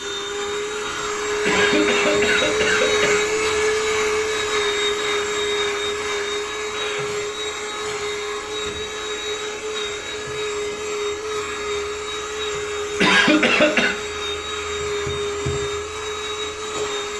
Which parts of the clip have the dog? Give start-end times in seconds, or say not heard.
not heard.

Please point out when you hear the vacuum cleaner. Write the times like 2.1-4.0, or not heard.
0.0-17.1.